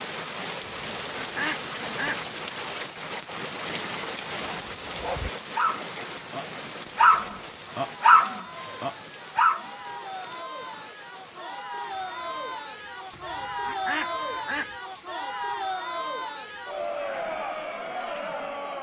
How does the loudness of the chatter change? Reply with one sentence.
The volume of the chatter goes up.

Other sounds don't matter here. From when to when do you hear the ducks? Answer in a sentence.
The ducks can be heard from 0.6 to 2.2 s and from 13.1 to 14.8 s.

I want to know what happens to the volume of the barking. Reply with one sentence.
The volume of the barking goes up, then down.